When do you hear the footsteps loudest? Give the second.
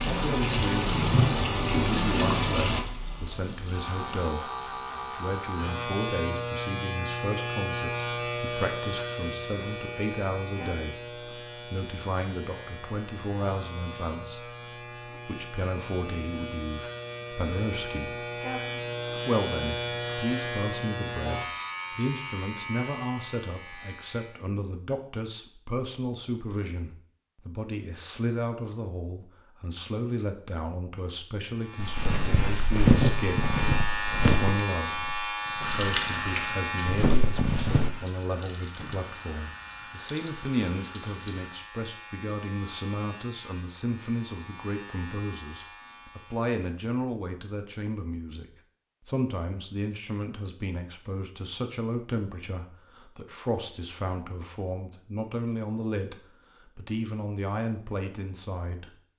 33 s.